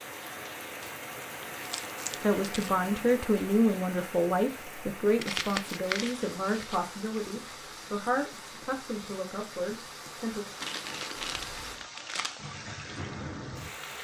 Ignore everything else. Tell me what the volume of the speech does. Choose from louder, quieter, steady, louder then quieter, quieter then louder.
quieter.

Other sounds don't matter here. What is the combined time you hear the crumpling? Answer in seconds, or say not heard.
5 s.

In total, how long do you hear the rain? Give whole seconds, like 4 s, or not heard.
14 s.